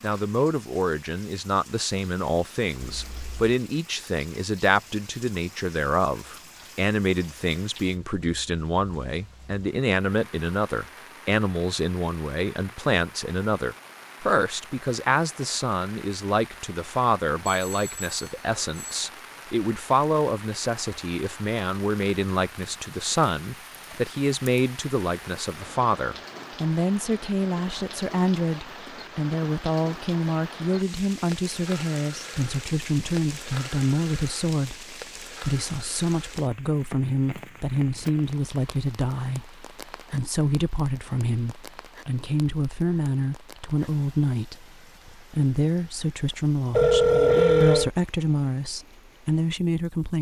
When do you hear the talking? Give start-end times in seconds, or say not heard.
0.0-50.1.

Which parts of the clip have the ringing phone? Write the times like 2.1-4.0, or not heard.
2.8-3.5, 17.4-19.0, 46.7-47.9.